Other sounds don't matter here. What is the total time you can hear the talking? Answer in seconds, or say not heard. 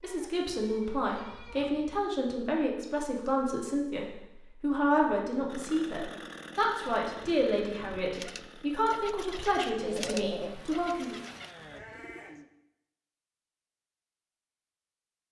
11 s.